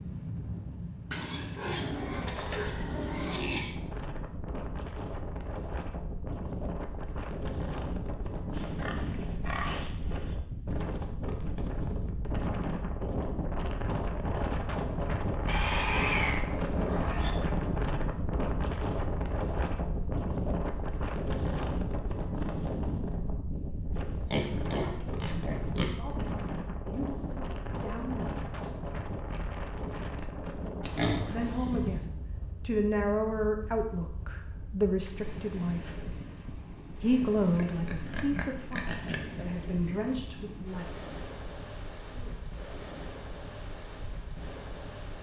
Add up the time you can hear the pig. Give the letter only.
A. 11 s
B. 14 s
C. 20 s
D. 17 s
A.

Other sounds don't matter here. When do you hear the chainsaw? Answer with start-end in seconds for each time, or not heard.
not heard.